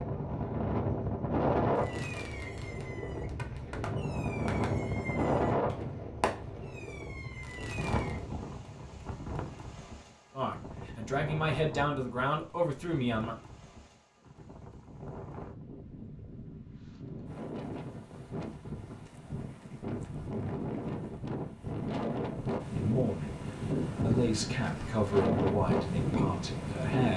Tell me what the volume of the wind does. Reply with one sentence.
The volume of the wind goes down, then up.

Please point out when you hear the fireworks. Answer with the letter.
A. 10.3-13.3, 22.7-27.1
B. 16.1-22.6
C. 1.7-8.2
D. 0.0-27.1
C.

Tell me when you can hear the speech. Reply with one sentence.
The speech can be heard from 10.3 to 13.3 s and from 22.7 to 27.1 s.